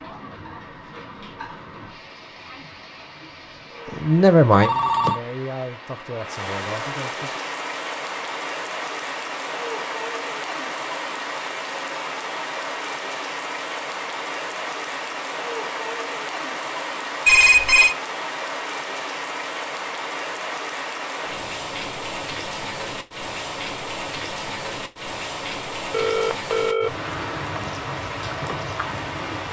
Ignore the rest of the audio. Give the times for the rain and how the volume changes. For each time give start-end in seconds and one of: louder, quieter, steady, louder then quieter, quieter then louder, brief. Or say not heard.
0.0-29.4 louder.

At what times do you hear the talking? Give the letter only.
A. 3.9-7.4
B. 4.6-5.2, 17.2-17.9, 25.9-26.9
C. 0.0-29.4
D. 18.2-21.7
A.